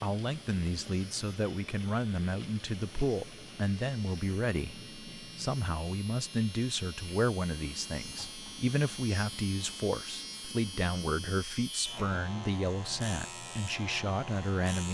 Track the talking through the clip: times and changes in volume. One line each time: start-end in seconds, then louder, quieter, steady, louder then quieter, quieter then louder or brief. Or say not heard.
0.0-14.8 steady.